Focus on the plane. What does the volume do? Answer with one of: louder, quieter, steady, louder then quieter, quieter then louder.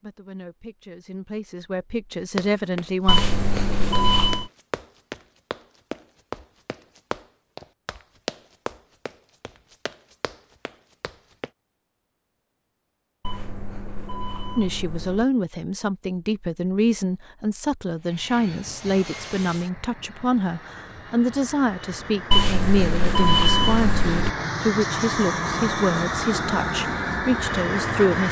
louder.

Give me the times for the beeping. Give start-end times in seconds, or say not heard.
3.0-4.5, 13.2-15.2, 22.3-24.3.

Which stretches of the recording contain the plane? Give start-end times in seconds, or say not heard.
18.0-28.2.